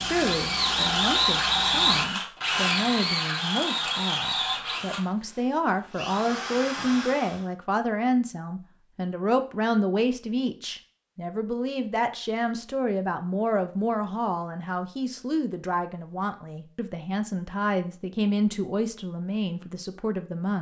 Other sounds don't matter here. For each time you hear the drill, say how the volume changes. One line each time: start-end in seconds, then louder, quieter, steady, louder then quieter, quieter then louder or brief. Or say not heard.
0.0-7.5 quieter.